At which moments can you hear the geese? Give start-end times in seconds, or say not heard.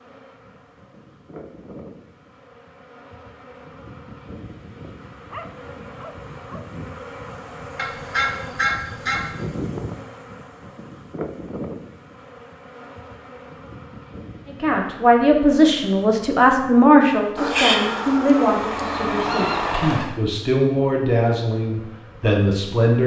7.8-9.4, 17.4-20.1.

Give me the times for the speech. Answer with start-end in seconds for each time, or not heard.
14.4-23.0.